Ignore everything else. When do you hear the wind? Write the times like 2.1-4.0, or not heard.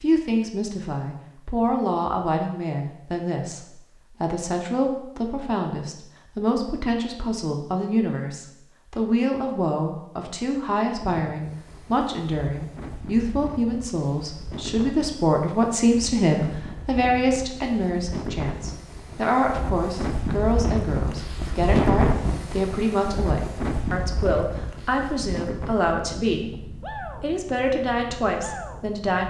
10.9-29.2.